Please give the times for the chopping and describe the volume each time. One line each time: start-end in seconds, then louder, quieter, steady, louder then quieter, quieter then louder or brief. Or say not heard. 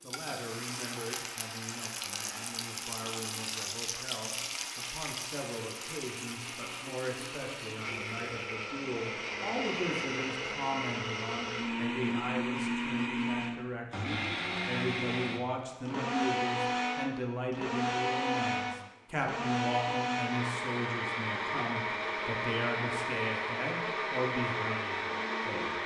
not heard.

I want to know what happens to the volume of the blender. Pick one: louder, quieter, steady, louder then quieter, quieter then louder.
louder.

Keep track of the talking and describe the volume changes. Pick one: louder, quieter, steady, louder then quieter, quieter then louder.
louder.